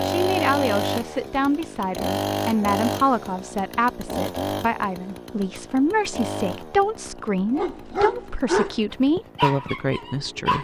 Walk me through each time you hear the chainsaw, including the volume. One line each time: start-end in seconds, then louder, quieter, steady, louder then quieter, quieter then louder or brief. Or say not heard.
0.0-10.5 quieter.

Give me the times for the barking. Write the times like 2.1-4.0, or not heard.
7.5-10.5.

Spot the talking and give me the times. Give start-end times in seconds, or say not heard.
0.0-10.5.